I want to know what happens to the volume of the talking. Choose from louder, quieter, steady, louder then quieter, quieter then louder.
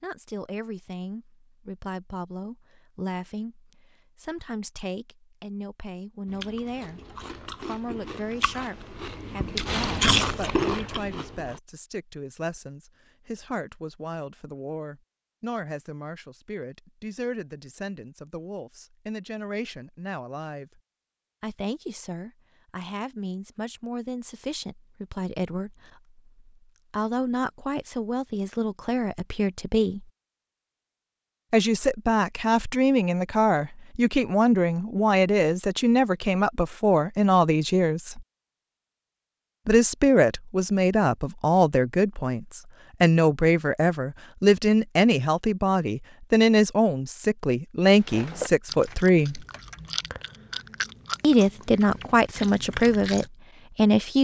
louder.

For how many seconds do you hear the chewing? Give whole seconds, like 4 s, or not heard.
11 s.